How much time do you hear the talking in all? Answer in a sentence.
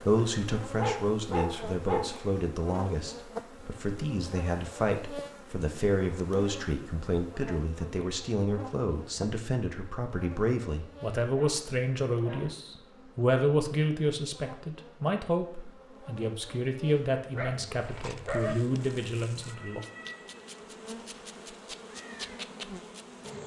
The talking can be heard for 20 seconds in total.